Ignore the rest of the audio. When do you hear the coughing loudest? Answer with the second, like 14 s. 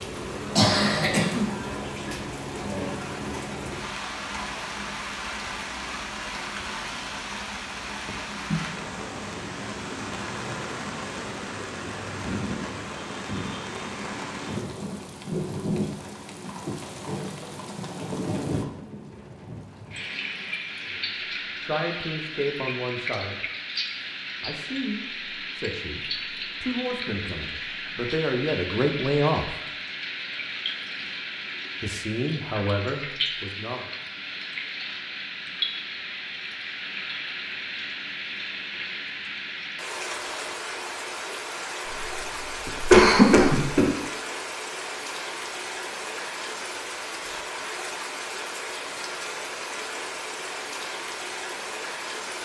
43 s.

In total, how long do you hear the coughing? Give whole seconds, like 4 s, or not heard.
3 s.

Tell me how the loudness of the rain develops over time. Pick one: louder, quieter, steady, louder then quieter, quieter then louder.
steady.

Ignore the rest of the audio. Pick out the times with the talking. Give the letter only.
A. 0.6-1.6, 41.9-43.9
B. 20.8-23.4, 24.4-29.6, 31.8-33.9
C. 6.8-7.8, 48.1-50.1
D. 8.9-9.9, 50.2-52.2
B.